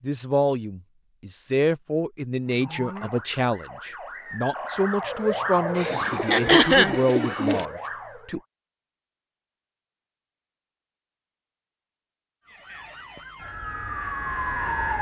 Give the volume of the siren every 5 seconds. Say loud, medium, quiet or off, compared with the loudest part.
medium, loud, loud.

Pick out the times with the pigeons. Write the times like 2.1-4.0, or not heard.
5.8-7.7.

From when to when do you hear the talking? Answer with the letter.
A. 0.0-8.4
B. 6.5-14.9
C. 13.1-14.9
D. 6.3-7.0
A.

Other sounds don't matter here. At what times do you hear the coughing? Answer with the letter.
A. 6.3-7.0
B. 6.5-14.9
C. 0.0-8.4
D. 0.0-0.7
A.